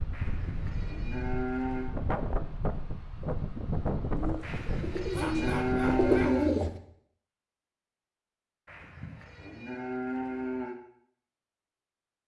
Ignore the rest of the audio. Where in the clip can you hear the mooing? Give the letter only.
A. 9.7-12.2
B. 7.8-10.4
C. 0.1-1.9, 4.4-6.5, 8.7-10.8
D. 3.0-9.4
C.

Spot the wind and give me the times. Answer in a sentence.
You can hear the wind from 0.0 to 6.3 s.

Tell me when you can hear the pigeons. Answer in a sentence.
The pigeons can be heard from 4.2 to 6.7 s.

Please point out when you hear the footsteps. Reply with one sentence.
You can't hear the footsteps here.